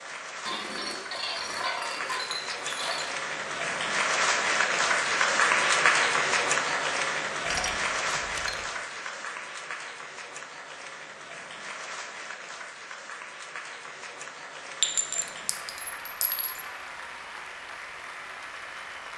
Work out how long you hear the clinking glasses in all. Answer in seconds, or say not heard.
6 s.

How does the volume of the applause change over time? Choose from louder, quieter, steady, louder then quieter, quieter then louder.
louder then quieter.